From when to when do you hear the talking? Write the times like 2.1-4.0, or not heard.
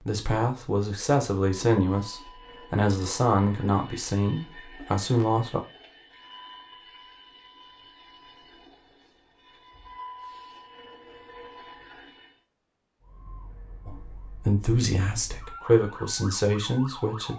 0.1-5.6, 13.8-17.3.